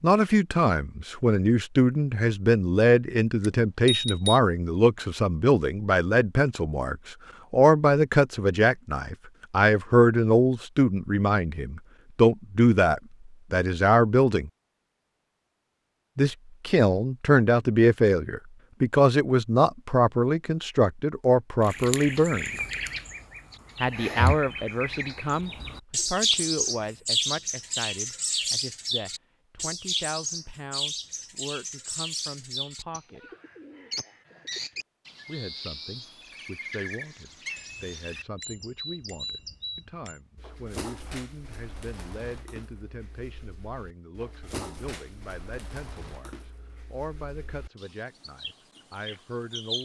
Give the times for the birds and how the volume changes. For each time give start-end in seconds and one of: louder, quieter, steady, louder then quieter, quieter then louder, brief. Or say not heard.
21.6-49.8 quieter.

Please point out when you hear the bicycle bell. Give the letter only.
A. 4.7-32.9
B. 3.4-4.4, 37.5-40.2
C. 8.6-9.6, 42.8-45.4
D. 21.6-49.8
B.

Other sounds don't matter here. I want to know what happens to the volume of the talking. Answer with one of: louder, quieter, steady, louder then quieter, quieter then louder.
quieter.